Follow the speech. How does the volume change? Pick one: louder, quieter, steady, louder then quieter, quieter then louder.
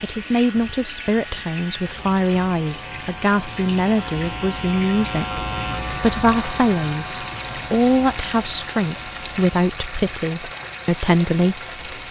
steady.